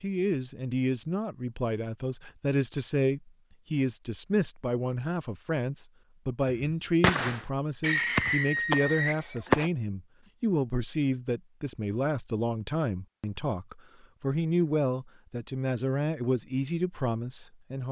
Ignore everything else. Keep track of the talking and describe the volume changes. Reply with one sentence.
The loudness of the talking stays about the same.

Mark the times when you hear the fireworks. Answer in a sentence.
You can hear the fireworks from 6.5 to 9.7 s.